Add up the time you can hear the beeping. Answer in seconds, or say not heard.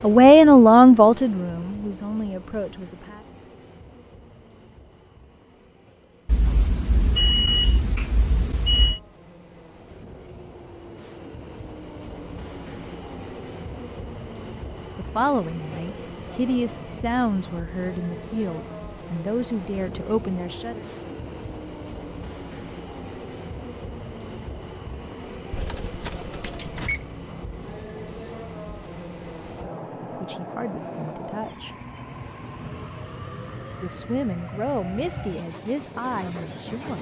4 s.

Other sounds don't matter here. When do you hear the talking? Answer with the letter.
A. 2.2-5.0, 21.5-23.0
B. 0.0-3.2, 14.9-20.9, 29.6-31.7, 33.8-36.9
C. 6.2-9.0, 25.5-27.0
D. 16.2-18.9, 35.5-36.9
B.